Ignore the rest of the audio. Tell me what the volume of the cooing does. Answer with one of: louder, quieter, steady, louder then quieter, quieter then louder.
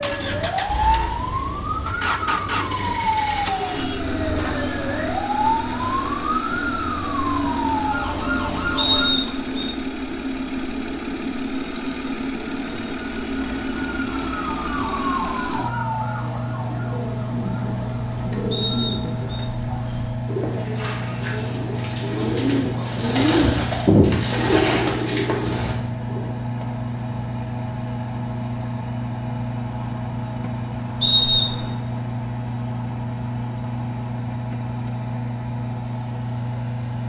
louder.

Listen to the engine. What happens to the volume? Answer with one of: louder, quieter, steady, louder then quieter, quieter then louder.
steady.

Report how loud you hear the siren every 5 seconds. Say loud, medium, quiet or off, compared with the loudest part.
loud, loud, medium, medium, off, off, off, off.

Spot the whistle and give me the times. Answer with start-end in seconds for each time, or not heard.
8.8-9.7, 18.5-19.3, 31.0-31.7.